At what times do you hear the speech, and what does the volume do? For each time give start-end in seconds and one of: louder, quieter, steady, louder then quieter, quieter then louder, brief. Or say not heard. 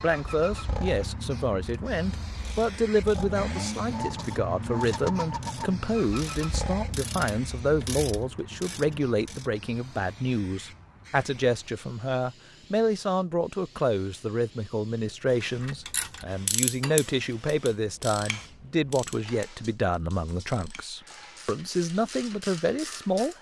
0.0-23.3 steady.